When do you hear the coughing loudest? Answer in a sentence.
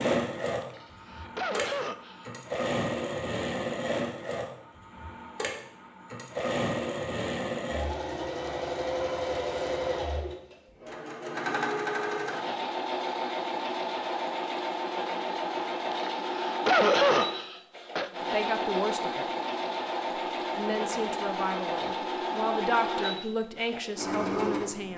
The volume of the coughing peaks at 17 seconds.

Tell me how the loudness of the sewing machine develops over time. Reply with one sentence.
The volume of the sewing machine stays about the same.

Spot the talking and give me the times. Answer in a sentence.
You can hear the talking from 18.2 to 19.3 s and from 20.5 to 24.9 s.